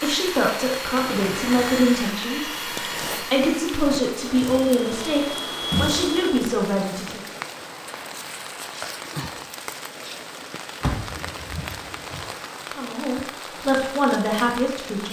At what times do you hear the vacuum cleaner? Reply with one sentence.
You can hear the vacuum cleaner from 0.0 to 6.5 s.